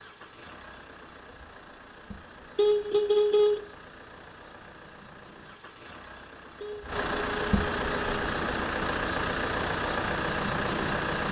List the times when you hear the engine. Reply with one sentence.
You can hear the engine from 0.0 to 11.2 s.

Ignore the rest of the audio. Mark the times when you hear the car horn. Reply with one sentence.
You can hear the car horn from 2.5 to 3.6 s and from 6.6 to 8.2 s.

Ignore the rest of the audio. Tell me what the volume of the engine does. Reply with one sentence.
The loudness of the engine goes up.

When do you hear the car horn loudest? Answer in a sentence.
The volume of the car horn peaks at 3 seconds.